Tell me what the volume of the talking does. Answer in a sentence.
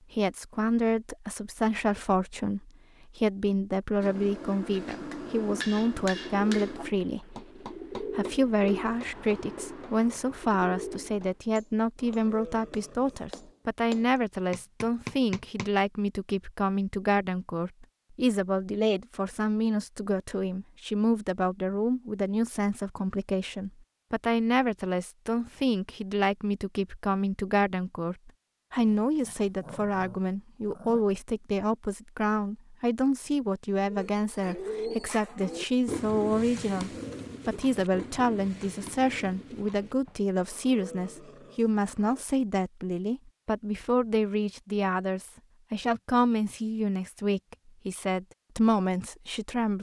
The volume of the talking stays about the same.